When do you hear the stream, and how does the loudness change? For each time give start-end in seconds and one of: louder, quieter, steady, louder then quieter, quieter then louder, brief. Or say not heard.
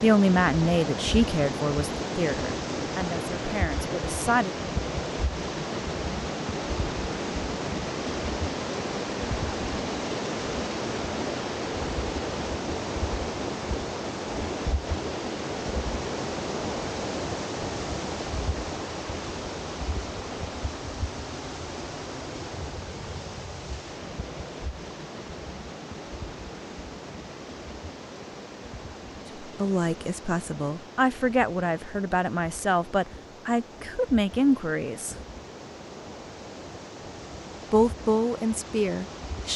0.0-39.5 quieter.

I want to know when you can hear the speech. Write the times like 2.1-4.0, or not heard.
0.0-4.5, 29.4-35.2, 37.7-39.5.